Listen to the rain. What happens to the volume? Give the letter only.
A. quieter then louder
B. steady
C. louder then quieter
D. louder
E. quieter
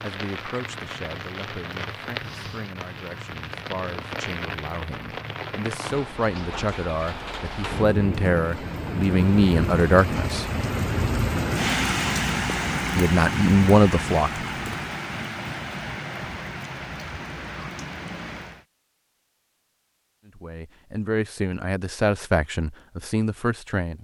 C.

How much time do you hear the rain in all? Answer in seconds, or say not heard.
19 s.